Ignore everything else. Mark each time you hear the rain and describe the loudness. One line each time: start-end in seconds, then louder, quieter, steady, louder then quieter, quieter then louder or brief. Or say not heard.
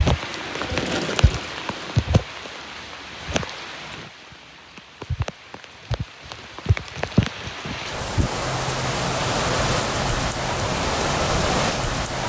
0.0-12.2 quieter then louder.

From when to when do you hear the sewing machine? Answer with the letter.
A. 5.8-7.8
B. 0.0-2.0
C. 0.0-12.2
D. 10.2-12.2
B.